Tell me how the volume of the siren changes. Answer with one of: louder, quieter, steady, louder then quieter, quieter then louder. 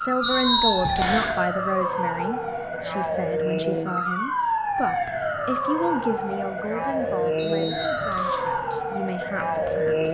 steady.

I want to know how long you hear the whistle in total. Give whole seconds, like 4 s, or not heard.
2 s.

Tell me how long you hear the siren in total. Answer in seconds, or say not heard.
10 s.